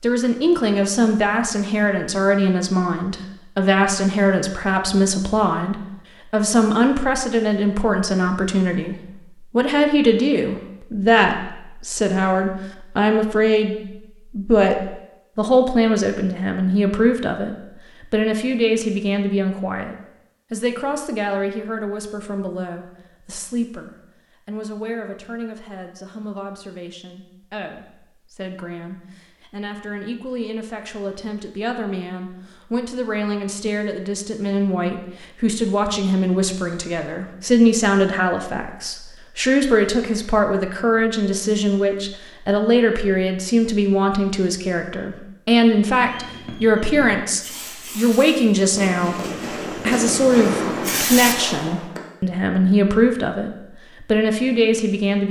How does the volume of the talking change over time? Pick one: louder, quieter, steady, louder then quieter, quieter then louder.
quieter then louder.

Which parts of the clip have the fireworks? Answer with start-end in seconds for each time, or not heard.
45.9-52.0.